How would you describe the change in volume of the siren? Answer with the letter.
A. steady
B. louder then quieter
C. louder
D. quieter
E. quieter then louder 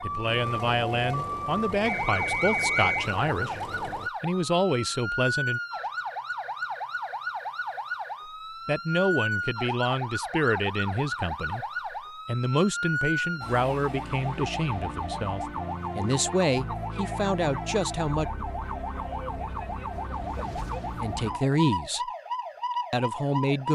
A.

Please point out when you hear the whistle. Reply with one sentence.
The whistle can be heard from 1.8 to 3.1 s.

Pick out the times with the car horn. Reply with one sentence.
You can't hear the car horn here.